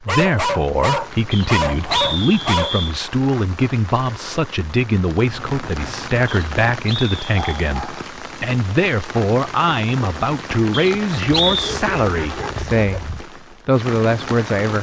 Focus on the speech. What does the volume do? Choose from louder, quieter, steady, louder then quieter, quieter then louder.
steady.